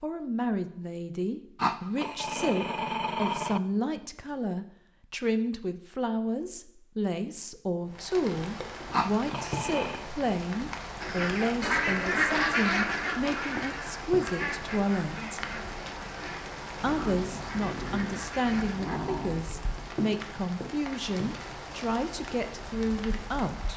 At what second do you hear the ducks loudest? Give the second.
12 s.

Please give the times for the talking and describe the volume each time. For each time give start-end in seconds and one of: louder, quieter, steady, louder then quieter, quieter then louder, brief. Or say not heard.
0.0-15.4 steady
16.8-23.7 steady.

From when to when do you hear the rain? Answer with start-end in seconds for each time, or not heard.
7.8-23.7.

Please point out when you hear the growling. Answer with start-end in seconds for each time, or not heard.
1.6-3.6, 8.9-10.1, 16.8-19.4.